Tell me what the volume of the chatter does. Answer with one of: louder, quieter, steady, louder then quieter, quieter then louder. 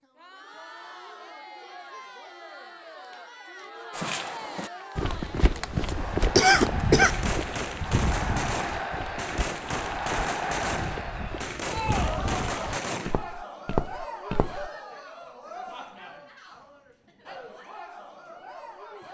louder then quieter.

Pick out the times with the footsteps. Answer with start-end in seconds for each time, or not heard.
3.9-14.7.